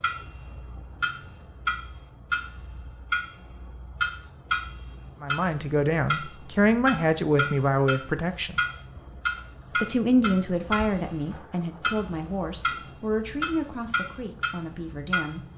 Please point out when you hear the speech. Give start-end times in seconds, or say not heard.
5.2-8.6, 9.8-15.4.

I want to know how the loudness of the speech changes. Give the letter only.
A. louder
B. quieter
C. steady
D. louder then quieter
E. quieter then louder
B.